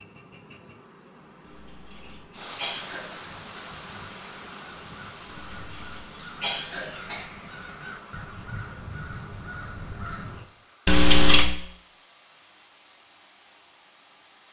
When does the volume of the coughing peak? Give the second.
11 s.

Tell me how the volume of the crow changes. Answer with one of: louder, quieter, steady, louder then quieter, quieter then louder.
louder.